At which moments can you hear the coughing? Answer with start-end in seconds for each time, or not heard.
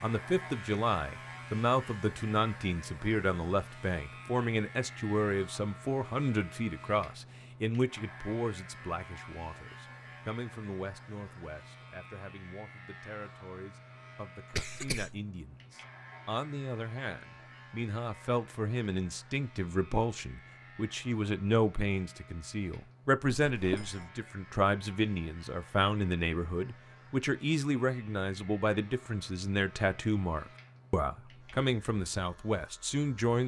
14.5-15.2, 23.4-24.1.